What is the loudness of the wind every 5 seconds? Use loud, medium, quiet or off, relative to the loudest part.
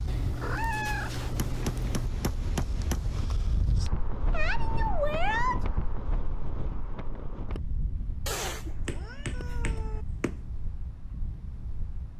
loud, loud, medium.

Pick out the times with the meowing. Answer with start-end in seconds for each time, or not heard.
0.1-2.1, 4.3-5.7, 8.2-10.1.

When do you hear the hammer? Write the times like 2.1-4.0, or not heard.
1.4-3.2, 8.8-10.4.